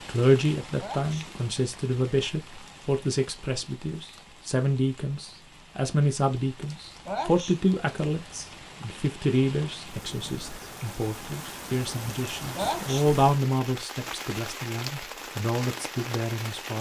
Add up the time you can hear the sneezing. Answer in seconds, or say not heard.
2 s.